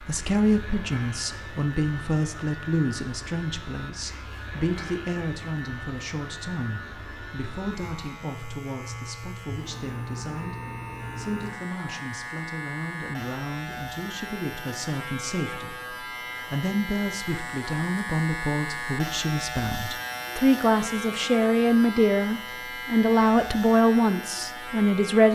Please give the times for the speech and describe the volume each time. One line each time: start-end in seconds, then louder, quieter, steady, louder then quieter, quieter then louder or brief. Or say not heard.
0.1-25.2 quieter then louder.